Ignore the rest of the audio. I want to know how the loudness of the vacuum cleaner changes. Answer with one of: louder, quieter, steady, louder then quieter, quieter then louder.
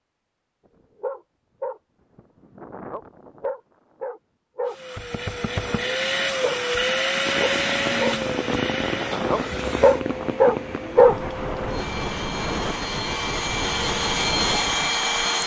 quieter then louder.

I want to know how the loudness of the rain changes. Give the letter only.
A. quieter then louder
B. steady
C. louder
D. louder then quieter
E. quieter
B.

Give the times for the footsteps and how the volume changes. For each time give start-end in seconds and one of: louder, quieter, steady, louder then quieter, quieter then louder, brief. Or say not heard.
not heard.